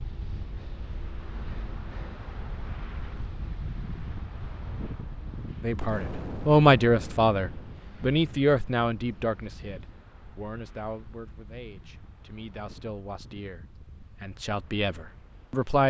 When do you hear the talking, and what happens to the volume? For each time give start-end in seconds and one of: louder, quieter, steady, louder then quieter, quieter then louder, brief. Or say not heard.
5.6-15.8 quieter then louder.